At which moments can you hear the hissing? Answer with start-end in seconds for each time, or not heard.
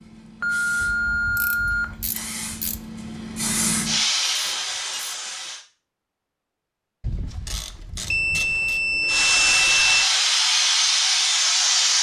0.0-5.6, 9.1-11.9.